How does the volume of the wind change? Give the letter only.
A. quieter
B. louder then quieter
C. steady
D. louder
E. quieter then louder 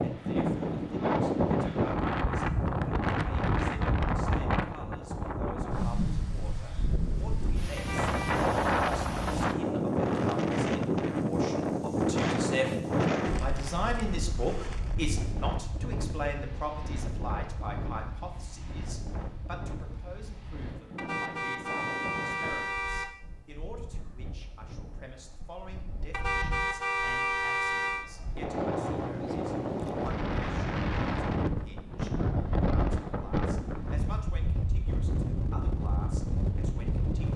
E.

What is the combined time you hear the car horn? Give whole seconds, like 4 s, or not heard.
5 s.